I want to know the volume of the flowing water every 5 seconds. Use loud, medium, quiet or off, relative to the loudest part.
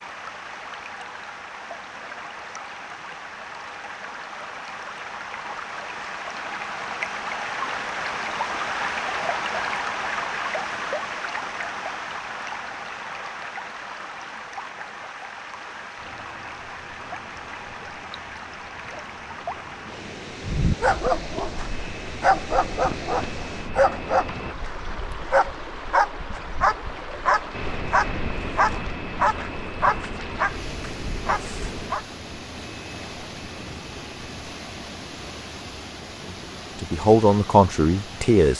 medium, loud, loud, medium, medium, medium, medium, medium.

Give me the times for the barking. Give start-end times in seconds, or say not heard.
20.4-32.0.